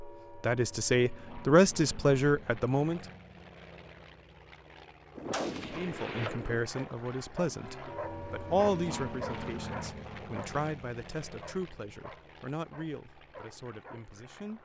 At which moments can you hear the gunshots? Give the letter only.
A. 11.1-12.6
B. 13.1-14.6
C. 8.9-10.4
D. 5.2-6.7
D.